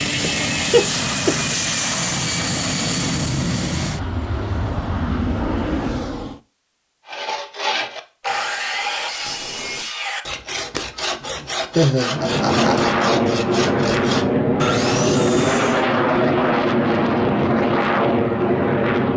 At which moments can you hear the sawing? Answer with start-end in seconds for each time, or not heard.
7.0-15.8.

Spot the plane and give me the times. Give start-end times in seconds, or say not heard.
0.0-6.4, 12.0-19.1.